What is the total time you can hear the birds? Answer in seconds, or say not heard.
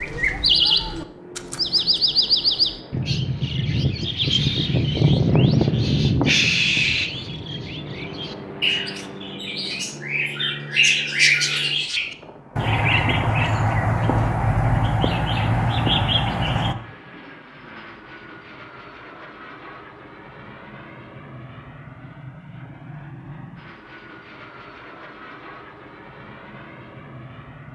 17 s.